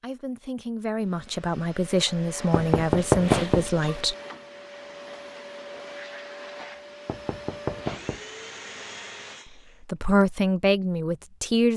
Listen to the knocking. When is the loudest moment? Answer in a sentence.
The loudest moment of the knocking is at 3 seconds.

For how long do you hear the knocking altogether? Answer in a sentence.
The knocking can be heard for 3 seconds in total.